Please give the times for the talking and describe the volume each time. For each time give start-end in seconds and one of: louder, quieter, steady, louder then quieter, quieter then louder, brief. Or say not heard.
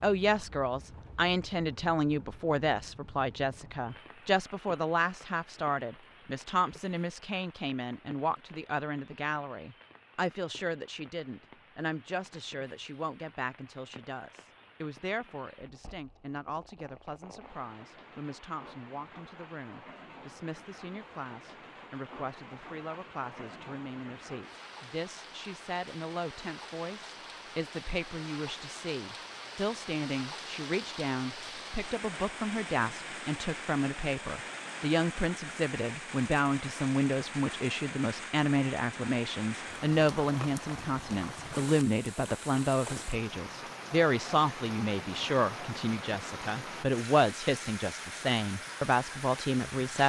0.0-50.0 quieter then louder.